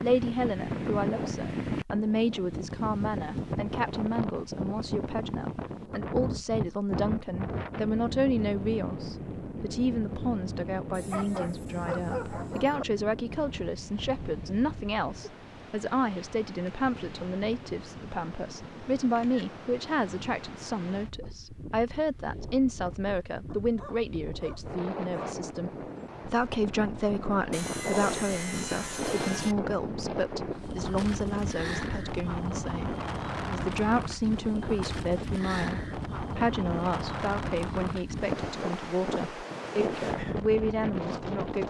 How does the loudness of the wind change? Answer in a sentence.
The volume of the wind goes down, then up.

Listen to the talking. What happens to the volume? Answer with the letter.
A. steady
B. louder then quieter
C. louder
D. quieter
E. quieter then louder
A.